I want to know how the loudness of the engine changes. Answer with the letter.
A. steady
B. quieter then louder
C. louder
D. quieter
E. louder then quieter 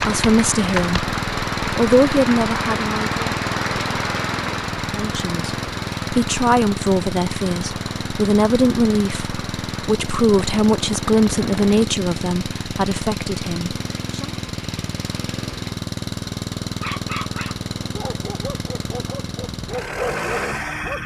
A.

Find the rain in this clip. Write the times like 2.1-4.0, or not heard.
0.0-15.6.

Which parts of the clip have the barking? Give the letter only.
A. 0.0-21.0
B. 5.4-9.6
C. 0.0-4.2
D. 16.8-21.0
D.